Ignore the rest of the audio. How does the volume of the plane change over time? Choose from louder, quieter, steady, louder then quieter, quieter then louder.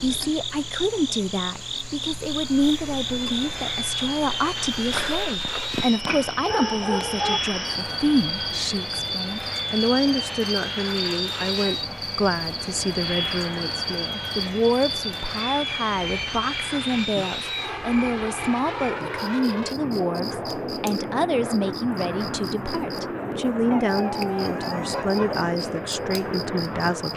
steady.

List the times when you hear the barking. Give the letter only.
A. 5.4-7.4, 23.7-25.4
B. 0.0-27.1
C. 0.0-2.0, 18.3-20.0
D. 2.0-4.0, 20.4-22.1
A.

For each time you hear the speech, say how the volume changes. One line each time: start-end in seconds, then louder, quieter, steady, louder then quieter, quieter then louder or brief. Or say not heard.
0.0-27.1 steady.